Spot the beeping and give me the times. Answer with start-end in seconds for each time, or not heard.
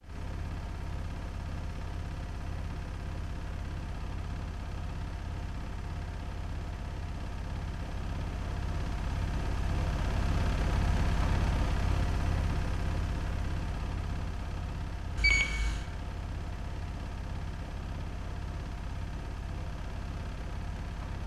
15.2-15.8.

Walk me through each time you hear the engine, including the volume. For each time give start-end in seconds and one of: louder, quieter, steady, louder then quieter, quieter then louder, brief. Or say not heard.
0.0-21.2 louder then quieter.